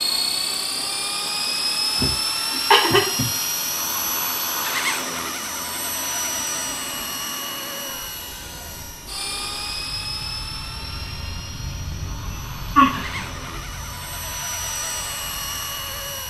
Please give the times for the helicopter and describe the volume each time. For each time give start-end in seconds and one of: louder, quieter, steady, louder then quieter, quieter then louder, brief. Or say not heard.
0.0-16.2 quieter.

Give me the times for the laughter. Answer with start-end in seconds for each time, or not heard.
1.9-3.2, 12.8-13.2.